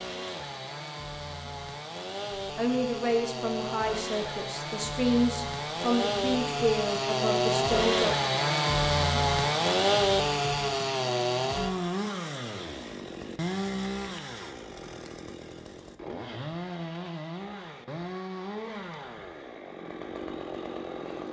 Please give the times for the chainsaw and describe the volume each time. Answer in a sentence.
You can hear the chainsaw from 0.0 to 21.2 s, getting louder then quieter.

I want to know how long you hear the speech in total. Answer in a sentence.
You can hear the speech for 6 seconds altogether.